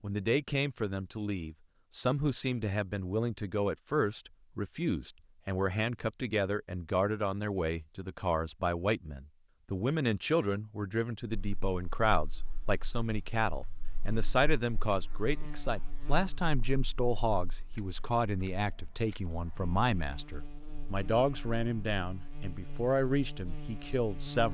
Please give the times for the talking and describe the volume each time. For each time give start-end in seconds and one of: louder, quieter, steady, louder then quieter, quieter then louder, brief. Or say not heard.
0.0-24.5 steady.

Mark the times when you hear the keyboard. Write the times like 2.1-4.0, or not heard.
not heard.